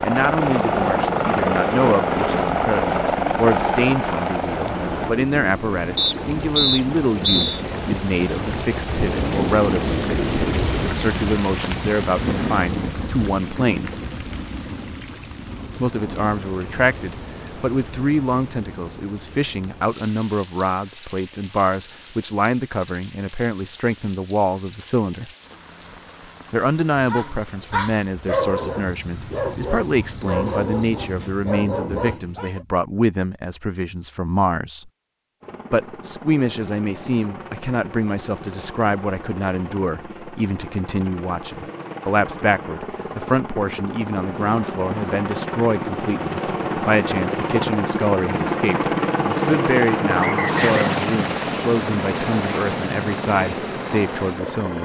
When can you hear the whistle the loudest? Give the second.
7 s.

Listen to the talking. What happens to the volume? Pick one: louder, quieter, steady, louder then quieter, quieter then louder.
steady.